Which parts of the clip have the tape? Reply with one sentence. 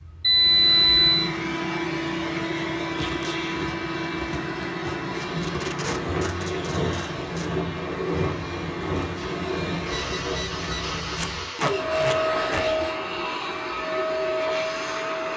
The tape can be heard from 3.0 to 3.4 s, from 5.1 to 7.5 s and from 11.2 to 12.7 s.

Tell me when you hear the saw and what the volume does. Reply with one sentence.
The saw can be heard from 5.2 to 13.1 s, getting quieter.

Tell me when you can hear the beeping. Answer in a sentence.
You can hear the beeping from 0.2 to 1.3 s and from 9.9 to 11.4 s.